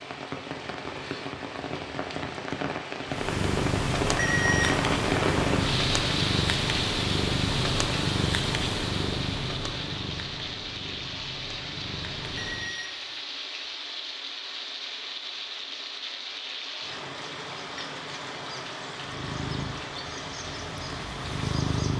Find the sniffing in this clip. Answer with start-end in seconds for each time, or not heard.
not heard.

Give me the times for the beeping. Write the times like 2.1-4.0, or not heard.
4.2-4.7, 12.2-13.2.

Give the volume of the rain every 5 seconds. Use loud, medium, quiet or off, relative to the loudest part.
loud, loud, medium, medium, medium.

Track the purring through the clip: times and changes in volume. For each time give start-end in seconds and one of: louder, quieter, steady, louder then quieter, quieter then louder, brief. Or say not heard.
3.0-12.8 quieter
19.0-21.9 brief.